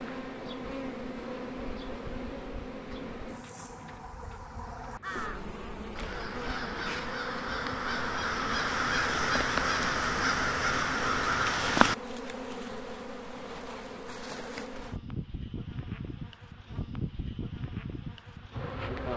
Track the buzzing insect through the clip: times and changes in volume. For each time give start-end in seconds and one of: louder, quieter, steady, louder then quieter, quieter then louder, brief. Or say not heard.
0.0-19.1 steady.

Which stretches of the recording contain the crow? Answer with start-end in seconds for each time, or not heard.
2.8-11.9.